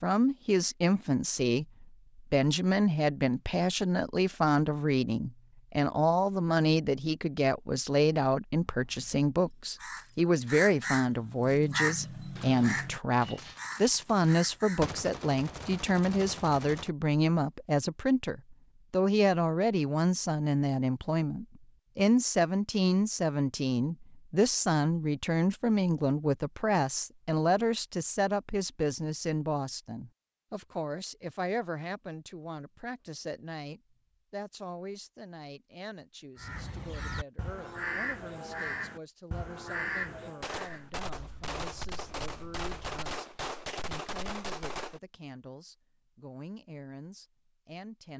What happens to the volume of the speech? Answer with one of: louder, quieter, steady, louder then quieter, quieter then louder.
quieter.